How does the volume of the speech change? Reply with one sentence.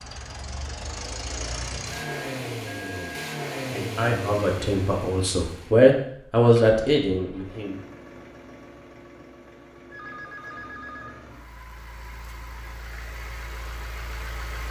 The volume of the speech goes up, then down.